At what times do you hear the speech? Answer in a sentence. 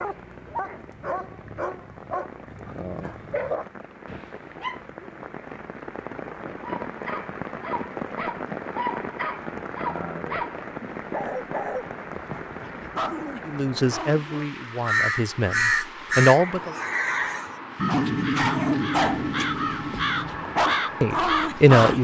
The speech can be heard from 13.4 to 16.8 s and from 21.0 to 21.9 s.